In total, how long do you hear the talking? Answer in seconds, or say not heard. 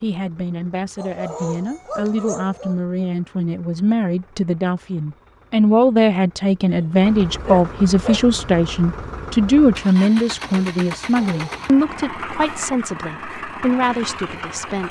15 s.